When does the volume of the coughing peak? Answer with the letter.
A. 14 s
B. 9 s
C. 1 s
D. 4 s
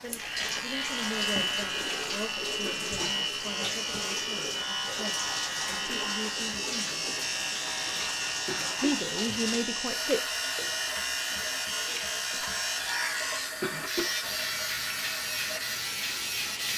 A.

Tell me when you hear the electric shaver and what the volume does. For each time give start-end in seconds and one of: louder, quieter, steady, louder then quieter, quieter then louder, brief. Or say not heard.
0.0-16.7 steady.